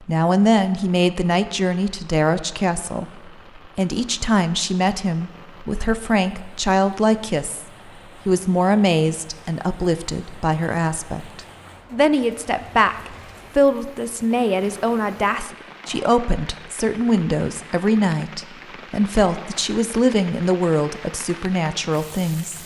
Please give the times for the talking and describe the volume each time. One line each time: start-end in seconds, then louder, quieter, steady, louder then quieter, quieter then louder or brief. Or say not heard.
0.0-22.6 steady.